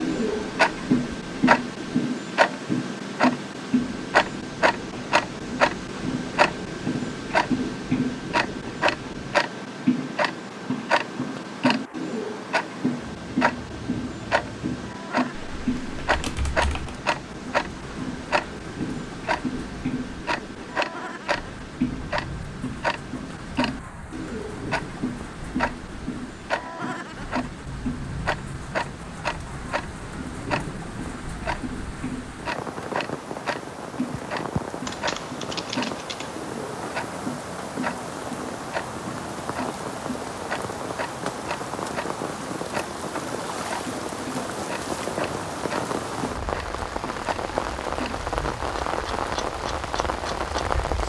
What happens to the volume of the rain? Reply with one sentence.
The volume of the rain goes up.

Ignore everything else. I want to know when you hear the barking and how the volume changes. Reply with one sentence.
You can't hear the barking here.